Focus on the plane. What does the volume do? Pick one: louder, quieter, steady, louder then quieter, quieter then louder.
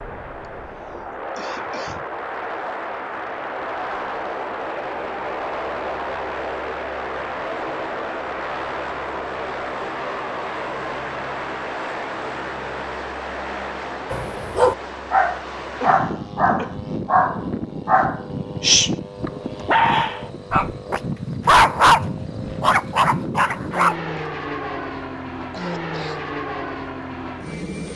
steady.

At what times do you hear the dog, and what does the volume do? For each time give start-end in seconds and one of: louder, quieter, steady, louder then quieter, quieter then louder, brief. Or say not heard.
14.1-23.9 steady.